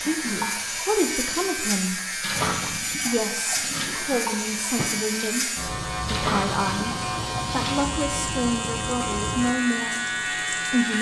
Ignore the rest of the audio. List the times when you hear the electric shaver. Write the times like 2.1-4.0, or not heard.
0.0-10.9.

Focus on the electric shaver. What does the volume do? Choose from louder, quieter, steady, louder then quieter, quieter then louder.
steady.